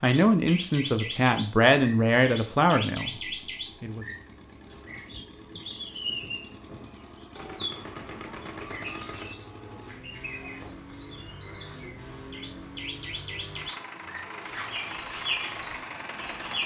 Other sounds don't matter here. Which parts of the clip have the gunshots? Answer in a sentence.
The gunshots can be heard from 7.3 to 9.3 s.